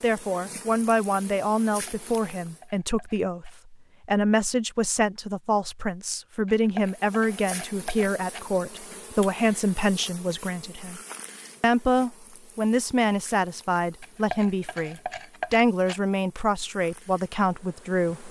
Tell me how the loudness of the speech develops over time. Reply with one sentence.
The loudness of the speech stays about the same.